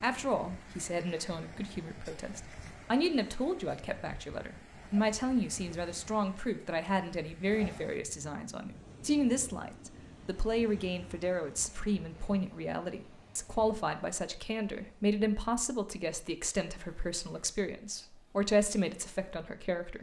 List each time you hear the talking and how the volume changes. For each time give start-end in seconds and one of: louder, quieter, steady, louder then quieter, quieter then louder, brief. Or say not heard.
0.0-19.9 steady.